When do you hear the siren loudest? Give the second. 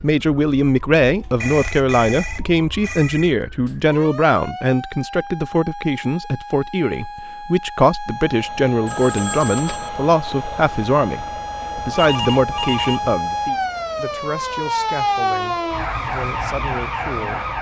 15 s.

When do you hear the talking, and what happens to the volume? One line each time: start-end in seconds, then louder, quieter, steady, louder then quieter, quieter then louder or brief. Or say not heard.
0.0-17.5 quieter.